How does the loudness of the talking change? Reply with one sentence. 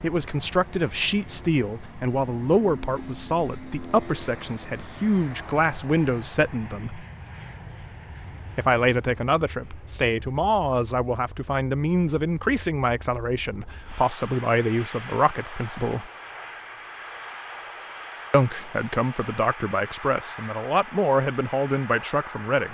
The loudness of the talking stays about the same.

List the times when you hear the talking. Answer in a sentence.
The talking can be heard from 0.0 to 7.0 s, from 8.6 to 16.1 s and from 18.3 to 22.6 s.